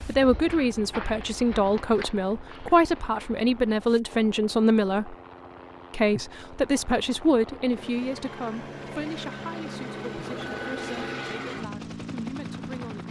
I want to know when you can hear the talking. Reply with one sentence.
You can hear the talking from 0.1 to 5.2 s and from 5.9 to 13.0 s.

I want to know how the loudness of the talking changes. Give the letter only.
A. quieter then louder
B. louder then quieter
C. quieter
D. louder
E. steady
C.